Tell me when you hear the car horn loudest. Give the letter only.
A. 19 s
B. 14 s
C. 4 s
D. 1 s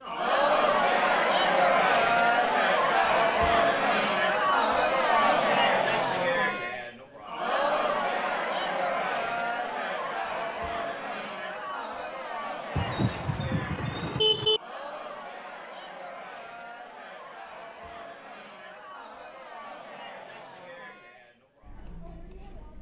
B.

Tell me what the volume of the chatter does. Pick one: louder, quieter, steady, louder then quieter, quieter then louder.
quieter.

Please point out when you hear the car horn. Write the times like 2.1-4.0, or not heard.
12.8-14.6.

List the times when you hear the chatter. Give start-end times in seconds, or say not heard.
0.0-22.7.